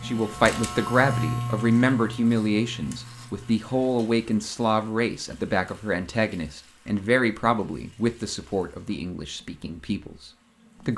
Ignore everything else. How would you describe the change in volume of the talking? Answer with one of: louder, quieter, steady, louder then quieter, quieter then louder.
quieter.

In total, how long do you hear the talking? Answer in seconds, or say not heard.
11 s.